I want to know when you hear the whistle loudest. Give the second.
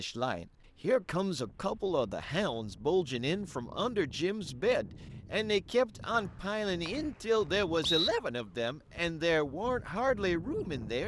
8 s.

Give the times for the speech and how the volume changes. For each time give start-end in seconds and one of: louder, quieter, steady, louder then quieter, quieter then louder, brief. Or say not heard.
0.0-11.0 steady.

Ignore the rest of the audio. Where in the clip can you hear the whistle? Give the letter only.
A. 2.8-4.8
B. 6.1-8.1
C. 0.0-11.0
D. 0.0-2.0
B.